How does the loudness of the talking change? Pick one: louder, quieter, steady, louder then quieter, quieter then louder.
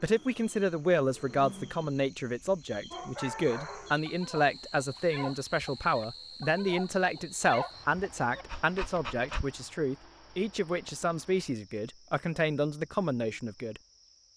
steady.